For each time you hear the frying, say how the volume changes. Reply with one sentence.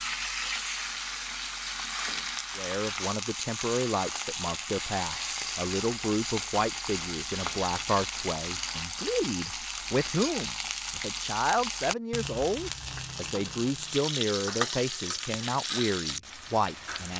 The frying can be heard from 0.0 to 17.1 s, at a steady volume.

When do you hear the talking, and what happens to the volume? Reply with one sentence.
You can hear the talking from 2.5 to 17.1 s, at a steady volume.